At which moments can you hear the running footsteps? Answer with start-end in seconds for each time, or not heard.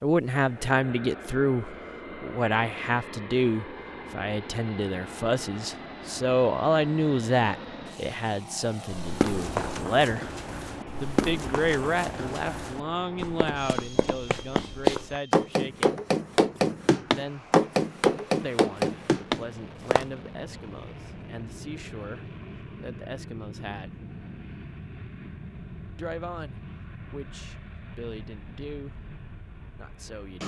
8.9-20.1.